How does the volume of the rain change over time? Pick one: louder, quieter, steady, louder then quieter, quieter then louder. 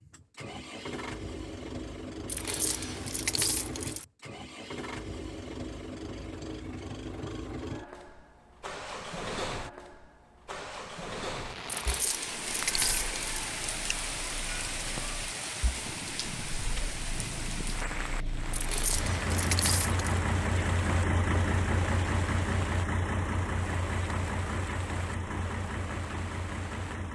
quieter.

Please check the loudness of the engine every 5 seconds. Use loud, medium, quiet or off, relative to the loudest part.
medium, medium, medium, medium, loud, medium.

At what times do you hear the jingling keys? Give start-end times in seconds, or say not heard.
2.2-4.0, 11.7-13.2, 18.5-20.1.